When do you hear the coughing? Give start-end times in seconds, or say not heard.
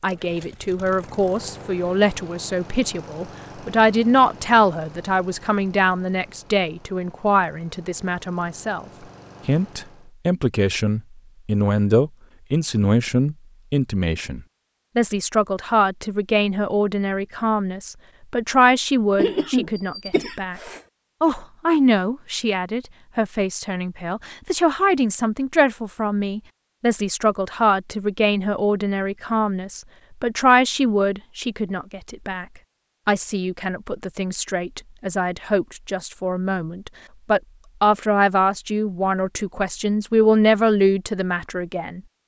19.1-20.8.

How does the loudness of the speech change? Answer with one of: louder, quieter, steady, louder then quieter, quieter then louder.
steady.